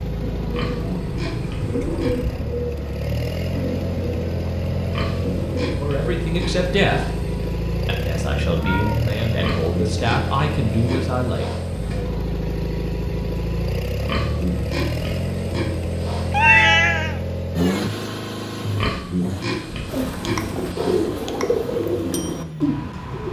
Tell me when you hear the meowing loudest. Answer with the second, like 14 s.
17 s.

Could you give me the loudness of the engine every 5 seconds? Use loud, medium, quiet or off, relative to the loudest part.
loud, loud, loud, loud, medium.